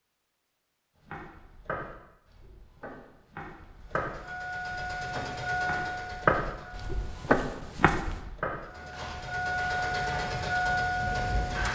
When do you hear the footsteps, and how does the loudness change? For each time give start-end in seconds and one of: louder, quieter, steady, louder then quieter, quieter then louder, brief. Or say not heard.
1.0-10.4 louder then quieter.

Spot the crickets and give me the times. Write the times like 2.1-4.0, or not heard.
not heard.